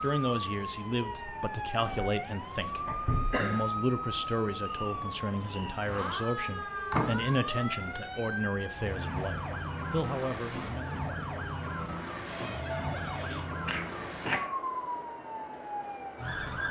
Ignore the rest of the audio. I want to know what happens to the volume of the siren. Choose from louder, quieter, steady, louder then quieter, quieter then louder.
steady.